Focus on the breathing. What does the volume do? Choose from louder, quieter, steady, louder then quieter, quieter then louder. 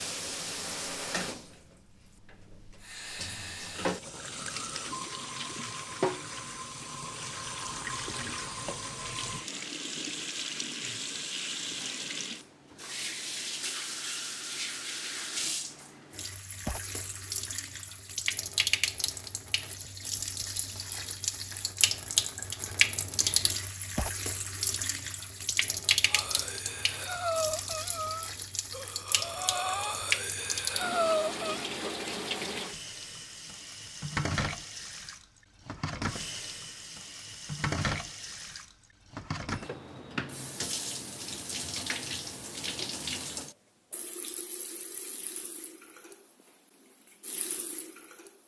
quieter then louder.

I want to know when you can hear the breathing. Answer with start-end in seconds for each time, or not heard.
26.1-31.6.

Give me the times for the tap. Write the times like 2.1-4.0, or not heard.
0.0-48.4.